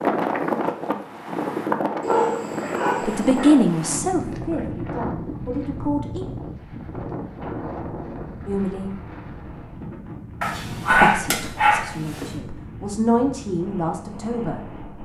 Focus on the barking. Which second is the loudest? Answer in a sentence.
The volume of the barking peaks at 11 seconds.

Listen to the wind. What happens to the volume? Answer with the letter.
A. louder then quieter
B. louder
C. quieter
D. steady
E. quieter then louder
C.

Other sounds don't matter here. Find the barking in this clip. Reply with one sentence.
You can hear the barking from 2.0 to 3.6 s and from 10.4 to 12.3 s.